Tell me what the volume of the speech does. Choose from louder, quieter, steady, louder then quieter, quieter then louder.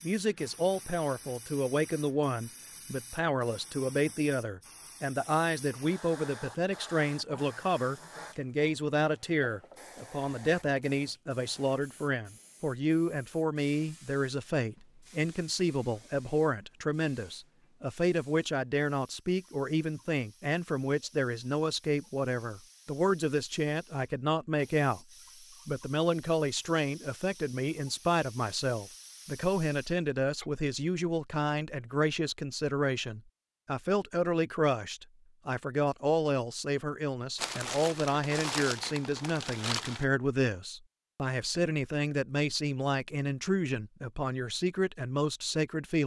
steady.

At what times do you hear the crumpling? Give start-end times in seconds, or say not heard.
37.4-40.0.